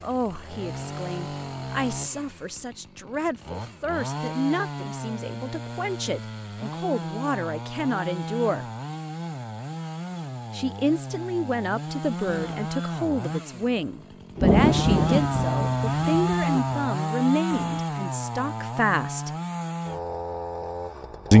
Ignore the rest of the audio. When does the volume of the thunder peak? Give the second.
15 s.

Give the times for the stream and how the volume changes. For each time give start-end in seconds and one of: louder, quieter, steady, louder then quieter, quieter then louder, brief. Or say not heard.
not heard.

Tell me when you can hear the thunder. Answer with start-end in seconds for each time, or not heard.
14.3-16.6.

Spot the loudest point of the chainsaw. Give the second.
16 s.